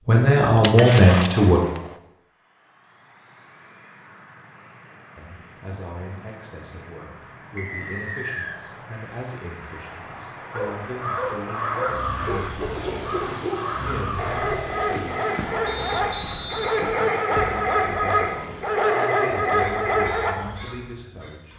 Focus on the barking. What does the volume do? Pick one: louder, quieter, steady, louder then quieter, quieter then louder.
louder.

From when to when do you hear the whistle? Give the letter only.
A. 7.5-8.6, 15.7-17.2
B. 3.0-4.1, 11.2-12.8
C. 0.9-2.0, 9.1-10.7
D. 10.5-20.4
A.